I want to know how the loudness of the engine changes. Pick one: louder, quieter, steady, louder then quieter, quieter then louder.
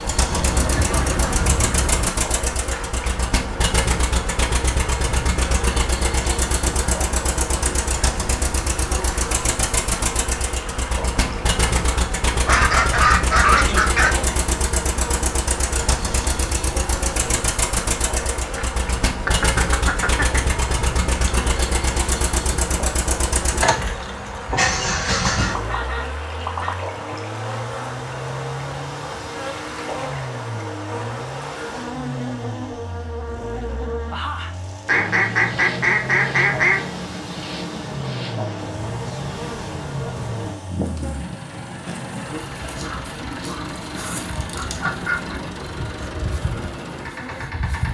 quieter.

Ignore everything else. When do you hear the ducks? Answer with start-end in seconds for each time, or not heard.
0.3-2.1, 12.4-14.2, 19.1-20.6, 25.2-26.8, 34.9-36.8, 42.8-45.4.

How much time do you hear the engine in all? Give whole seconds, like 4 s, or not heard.
48 s.